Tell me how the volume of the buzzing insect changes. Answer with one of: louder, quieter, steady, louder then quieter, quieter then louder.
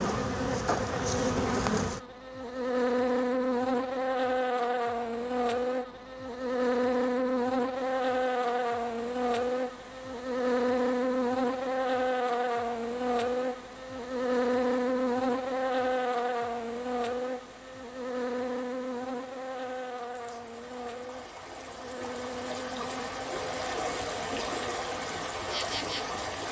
quieter.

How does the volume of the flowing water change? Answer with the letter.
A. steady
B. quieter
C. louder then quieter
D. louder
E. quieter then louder
D.